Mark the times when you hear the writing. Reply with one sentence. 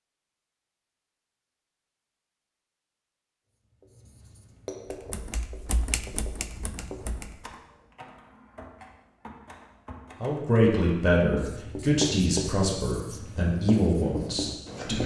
You can hear the writing from 3.6 to 7.4 s and from 11.2 to 15.0 s.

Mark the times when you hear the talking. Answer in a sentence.
You can hear the talking from 10.2 to 15.0 s.